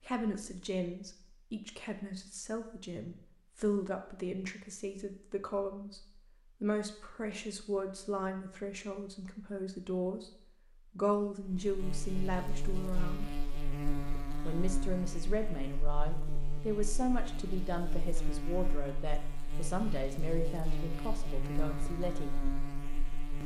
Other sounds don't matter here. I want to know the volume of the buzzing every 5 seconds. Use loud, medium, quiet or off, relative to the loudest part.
off, off, loud, loud, loud.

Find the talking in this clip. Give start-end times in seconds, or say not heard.
0.0-13.3, 14.4-22.4.